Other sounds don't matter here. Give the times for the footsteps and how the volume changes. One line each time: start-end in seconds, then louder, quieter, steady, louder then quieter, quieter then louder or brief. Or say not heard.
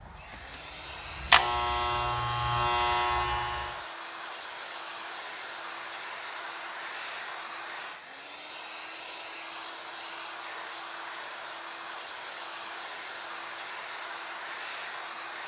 not heard.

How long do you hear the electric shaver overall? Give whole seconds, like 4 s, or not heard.
4 s.